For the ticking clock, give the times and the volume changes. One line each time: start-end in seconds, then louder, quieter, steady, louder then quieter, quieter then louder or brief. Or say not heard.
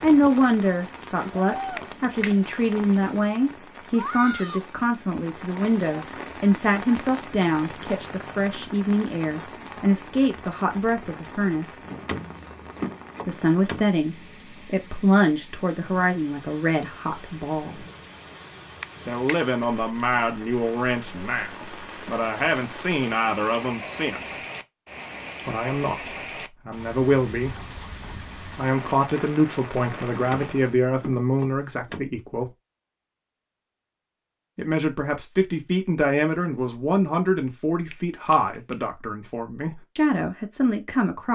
not heard.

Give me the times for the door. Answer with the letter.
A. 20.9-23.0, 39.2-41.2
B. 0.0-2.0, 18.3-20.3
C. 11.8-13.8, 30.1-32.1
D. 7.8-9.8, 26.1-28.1
C.